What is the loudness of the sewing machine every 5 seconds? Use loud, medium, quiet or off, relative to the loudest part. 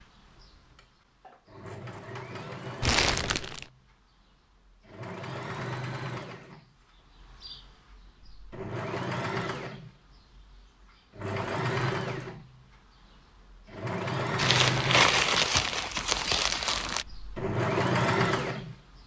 quiet, medium, loud, loud.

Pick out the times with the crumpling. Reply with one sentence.
You can hear the crumpling from 2.8 to 3.6 s and from 14.3 to 17.1 s.